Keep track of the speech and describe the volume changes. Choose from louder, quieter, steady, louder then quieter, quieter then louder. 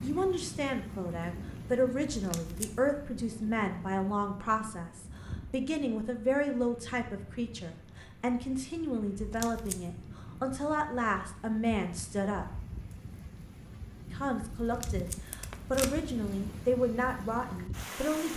steady.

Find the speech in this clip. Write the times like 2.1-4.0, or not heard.
0.0-12.4, 14.1-18.3.